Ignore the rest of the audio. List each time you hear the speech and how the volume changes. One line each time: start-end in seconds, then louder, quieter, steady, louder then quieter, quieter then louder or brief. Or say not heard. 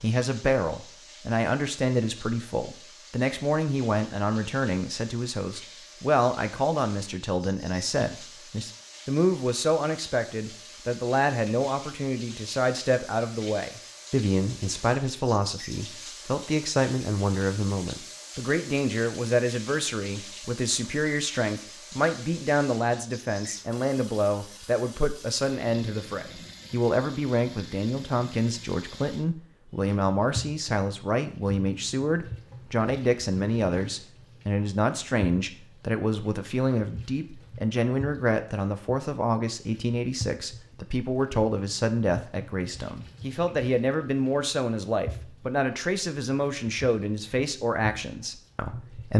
0.0-49.1 steady.